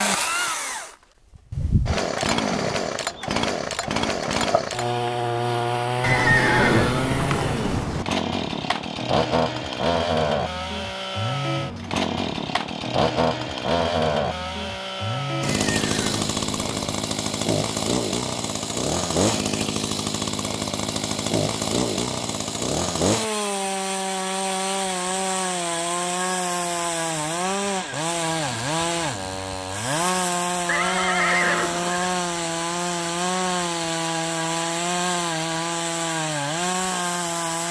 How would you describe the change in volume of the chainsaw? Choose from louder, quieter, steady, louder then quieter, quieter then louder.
steady.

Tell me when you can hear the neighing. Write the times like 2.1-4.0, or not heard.
6.0-8.1, 15.4-16.9, 30.6-32.1.